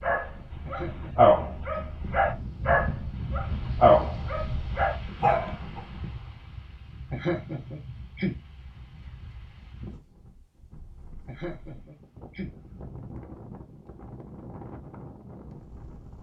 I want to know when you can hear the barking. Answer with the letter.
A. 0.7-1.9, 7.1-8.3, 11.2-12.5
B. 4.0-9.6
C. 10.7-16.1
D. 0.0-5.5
D.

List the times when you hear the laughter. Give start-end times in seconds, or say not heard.
0.7-1.9, 7.1-8.3, 11.2-12.5.